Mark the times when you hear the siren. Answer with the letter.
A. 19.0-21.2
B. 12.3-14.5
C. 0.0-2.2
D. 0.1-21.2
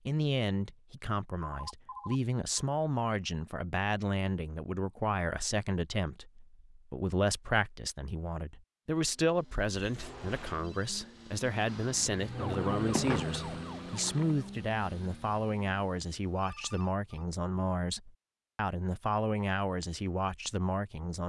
B.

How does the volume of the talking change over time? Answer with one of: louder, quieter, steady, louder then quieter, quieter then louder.
steady.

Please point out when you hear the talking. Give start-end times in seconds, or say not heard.
0.1-21.2.